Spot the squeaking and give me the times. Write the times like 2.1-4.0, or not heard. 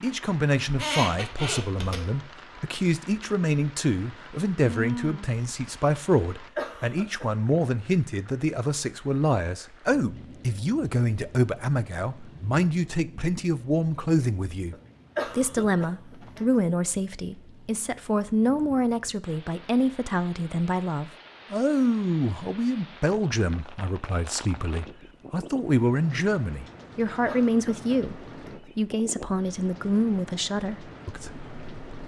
0.7-2.0.